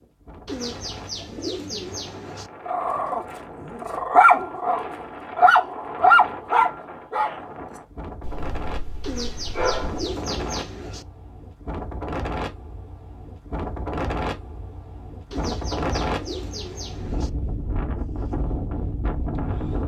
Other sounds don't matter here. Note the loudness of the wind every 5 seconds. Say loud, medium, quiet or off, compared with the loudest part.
medium, medium, loud, loud.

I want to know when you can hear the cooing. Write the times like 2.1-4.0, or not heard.
0.5-2.5, 9.0-11.1, 15.3-17.3.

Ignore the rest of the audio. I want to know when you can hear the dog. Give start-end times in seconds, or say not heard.
2.6-10.1.